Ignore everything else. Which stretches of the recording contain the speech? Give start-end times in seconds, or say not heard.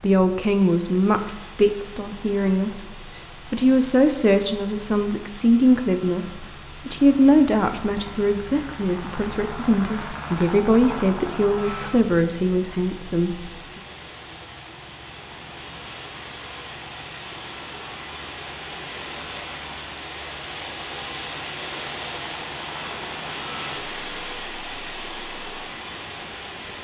0.0-13.5.